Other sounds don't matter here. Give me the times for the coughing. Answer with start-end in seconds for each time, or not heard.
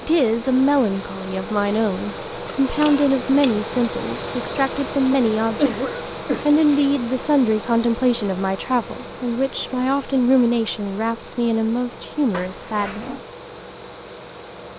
5.1-6.9.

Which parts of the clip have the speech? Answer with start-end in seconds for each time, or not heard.
0.0-13.3.